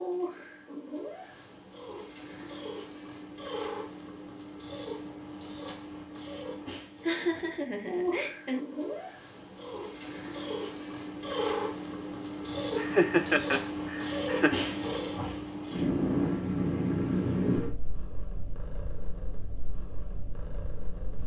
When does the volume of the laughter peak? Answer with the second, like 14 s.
13 s.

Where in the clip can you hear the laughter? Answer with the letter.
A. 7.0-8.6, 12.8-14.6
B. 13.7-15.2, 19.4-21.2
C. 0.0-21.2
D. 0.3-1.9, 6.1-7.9
A.